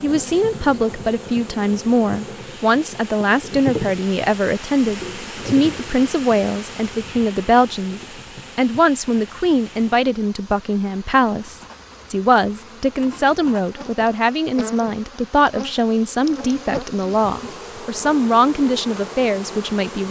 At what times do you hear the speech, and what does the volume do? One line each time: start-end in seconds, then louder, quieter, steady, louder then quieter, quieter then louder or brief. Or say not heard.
0.0-20.0 steady.